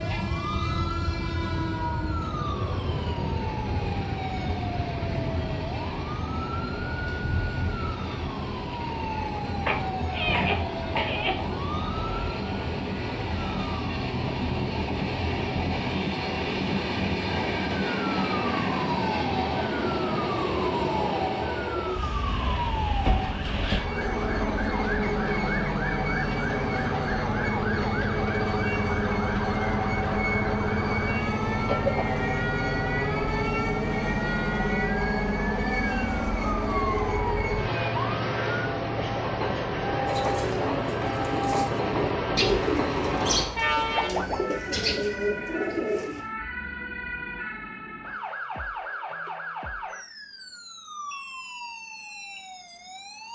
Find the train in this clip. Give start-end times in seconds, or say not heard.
0.0-44.1.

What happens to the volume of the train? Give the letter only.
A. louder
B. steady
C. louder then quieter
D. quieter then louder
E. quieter
A.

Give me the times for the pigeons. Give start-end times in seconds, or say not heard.
40.0-46.2.